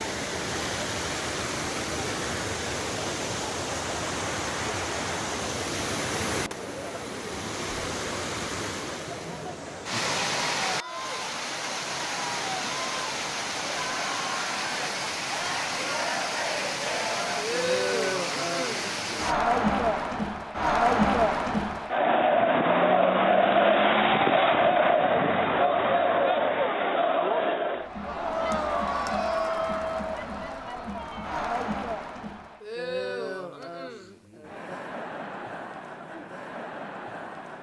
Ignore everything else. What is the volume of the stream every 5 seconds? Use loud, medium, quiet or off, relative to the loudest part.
loud, loud, loud, loud, off, off, off, off.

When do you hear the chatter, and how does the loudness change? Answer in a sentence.
The chatter can be heard from 0.0 to 37.5 s, getting louder then quieter.